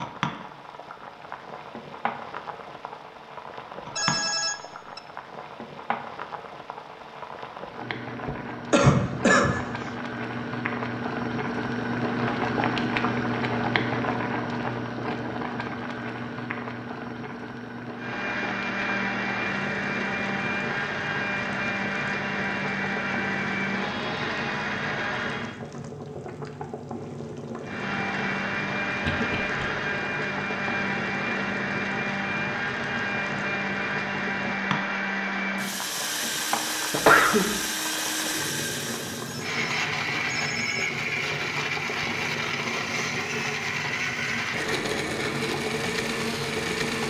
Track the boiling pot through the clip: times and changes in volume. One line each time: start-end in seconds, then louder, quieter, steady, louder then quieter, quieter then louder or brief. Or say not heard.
0.0-47.0 louder then quieter.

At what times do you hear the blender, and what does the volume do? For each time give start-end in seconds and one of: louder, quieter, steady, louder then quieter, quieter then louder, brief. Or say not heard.
17.9-25.6 steady
27.6-47.0 steady.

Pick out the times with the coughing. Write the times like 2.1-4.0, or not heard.
8.2-9.8, 29.0-29.6, 36.9-37.5.